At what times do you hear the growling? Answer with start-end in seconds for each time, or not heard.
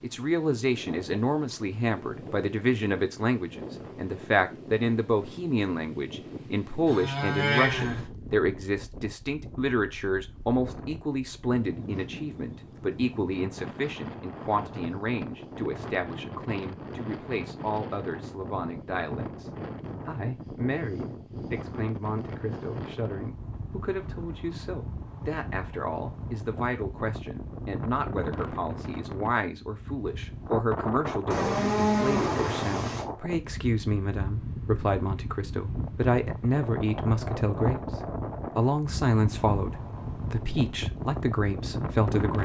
not heard.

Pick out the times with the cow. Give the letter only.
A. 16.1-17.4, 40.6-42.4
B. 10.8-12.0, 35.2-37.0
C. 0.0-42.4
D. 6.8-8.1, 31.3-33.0
D.